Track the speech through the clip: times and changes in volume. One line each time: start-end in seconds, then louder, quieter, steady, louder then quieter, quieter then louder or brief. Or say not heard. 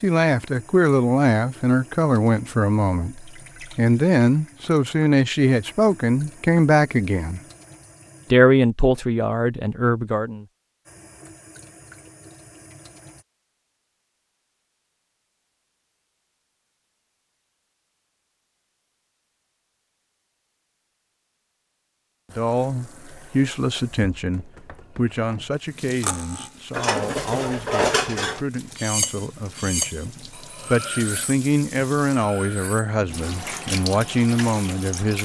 0.0-7.4 steady
8.3-10.4 brief
22.4-35.2 quieter then louder.